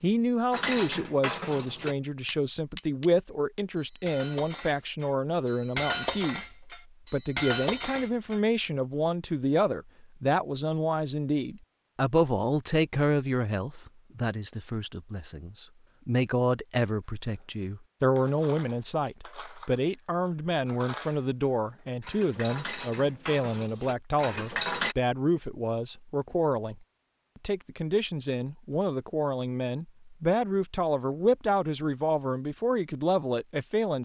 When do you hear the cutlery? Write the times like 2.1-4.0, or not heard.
0.5-8.4, 17.3-24.9.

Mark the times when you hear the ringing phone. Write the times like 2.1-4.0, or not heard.
not heard.